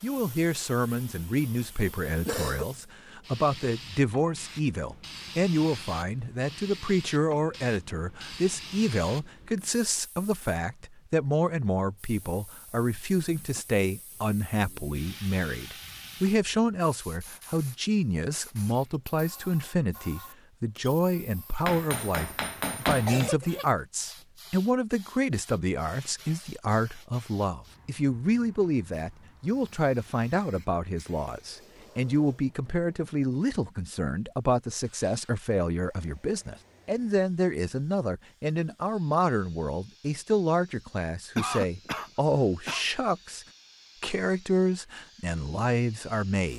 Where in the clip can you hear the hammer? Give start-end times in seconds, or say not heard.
21.6-23.3.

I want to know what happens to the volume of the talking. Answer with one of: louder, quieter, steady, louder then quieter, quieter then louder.
steady.